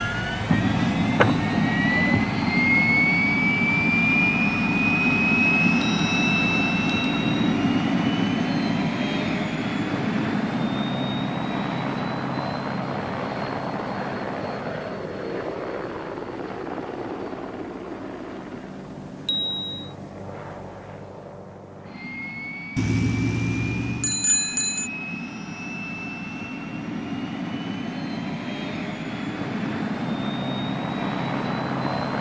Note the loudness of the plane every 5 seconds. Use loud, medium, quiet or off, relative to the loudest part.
loud, loud, medium, quiet, quiet, medium, medium.